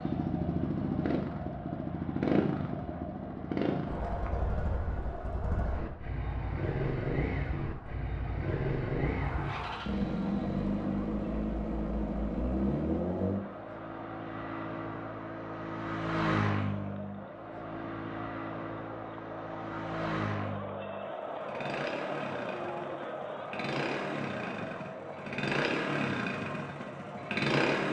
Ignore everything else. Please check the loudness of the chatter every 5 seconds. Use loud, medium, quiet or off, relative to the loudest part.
medium, medium, medium, medium, loud, medium.